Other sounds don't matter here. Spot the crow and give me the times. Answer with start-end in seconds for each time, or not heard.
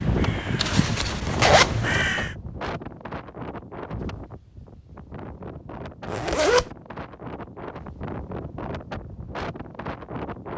0.0-2.4.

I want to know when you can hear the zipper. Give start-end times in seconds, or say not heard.
0.6-2.1, 6.0-6.7.